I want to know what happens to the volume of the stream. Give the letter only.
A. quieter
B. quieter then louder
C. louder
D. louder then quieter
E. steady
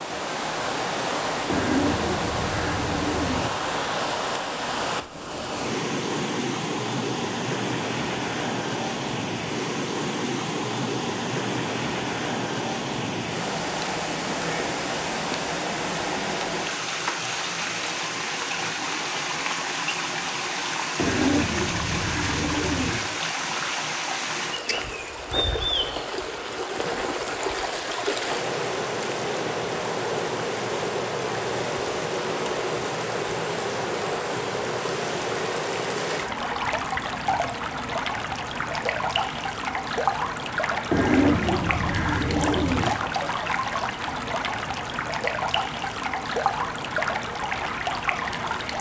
E.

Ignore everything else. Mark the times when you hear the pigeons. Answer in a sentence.
The pigeons can be heard from 1.4 to 3.5 s, from 20.9 to 23.0 s and from 40.9 to 42.9 s.